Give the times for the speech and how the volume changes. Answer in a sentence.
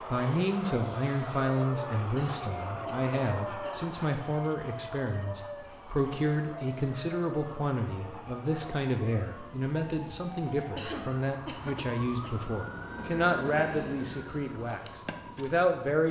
The speech can be heard from 0.1 to 16.0 s, at a steady volume.